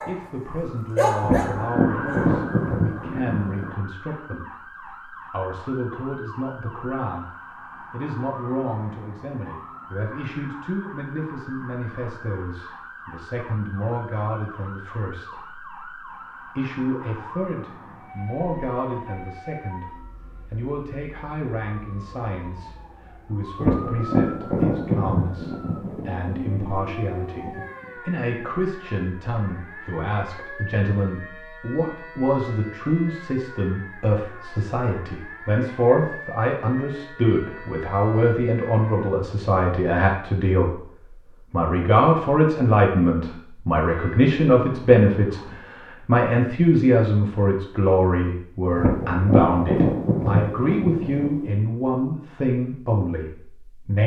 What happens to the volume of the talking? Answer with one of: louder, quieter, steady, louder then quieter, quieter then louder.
louder.